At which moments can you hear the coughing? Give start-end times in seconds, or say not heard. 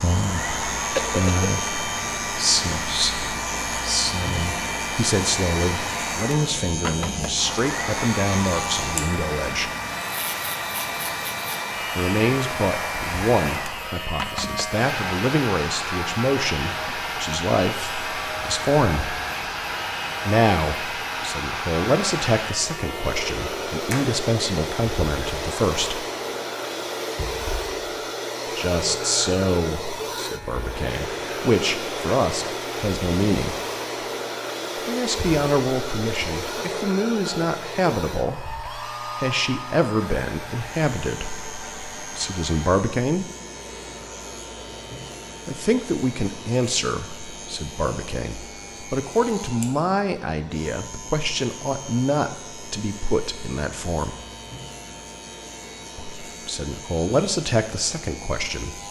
0.9-1.6.